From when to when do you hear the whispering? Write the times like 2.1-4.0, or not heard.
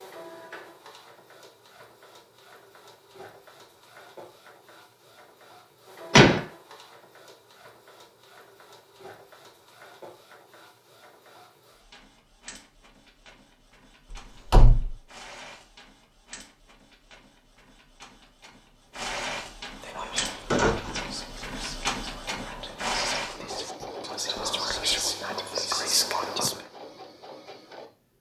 19.8-26.6.